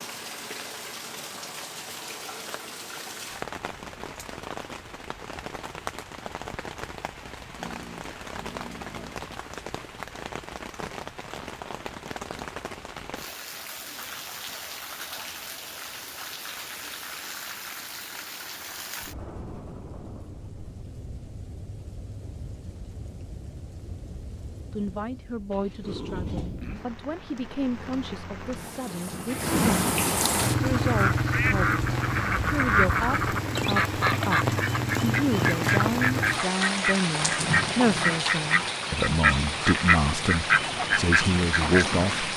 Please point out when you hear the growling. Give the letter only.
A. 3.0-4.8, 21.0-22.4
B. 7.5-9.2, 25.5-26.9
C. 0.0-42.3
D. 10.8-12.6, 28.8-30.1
B.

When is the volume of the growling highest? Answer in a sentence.
The loudest moment of the growling is at 26 seconds.